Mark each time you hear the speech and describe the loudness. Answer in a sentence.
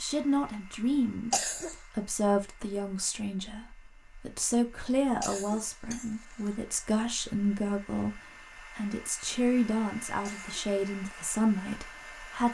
The speech can be heard from 0.0 to 12.4 s, at a steady volume.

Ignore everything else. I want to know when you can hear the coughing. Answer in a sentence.
The coughing can be heard from 1.3 to 1.8 s, from 5.2 to 6.5 s and from 10.2 to 10.7 s.